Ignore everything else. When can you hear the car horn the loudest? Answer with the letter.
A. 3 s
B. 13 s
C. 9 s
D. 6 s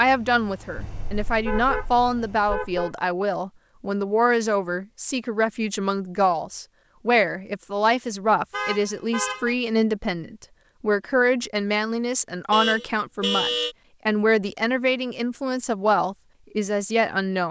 B.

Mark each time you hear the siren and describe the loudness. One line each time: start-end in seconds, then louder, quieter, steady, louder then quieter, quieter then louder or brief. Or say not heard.
not heard.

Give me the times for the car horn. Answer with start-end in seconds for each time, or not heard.
0.8-3.0, 8.5-9.6, 12.5-13.8.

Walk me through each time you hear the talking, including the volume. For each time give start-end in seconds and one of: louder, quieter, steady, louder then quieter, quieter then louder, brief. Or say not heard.
0.0-17.4 steady.